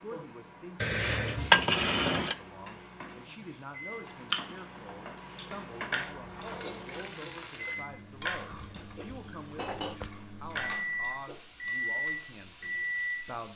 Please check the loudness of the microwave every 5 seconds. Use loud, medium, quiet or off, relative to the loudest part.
quiet, medium, loud.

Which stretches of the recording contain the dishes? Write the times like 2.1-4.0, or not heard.
0.8-2.4, 8.5-10.1.